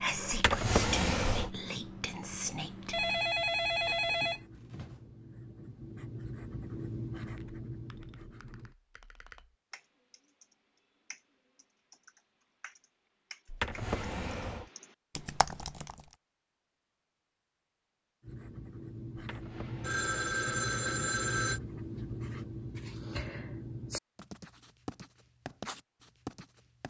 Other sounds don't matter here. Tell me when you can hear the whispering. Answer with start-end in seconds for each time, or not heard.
0.0-3.2.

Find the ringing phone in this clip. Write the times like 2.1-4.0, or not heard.
2.9-5.0, 19.8-21.6.